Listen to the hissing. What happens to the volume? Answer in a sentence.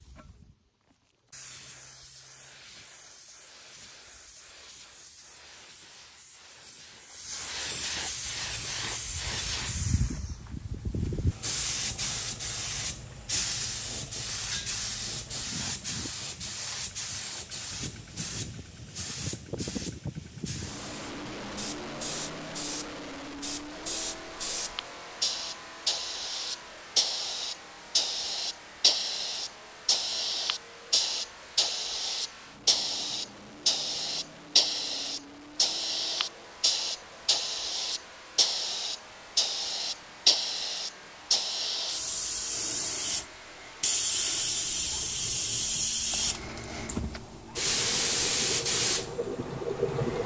The loudness of the hissing goes up.